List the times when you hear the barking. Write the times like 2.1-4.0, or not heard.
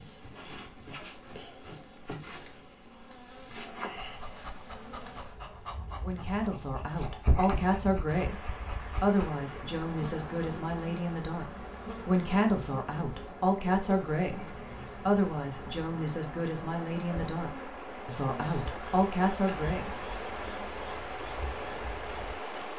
4.0-9.3.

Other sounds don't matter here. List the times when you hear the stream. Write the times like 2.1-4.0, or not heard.
8.1-22.7.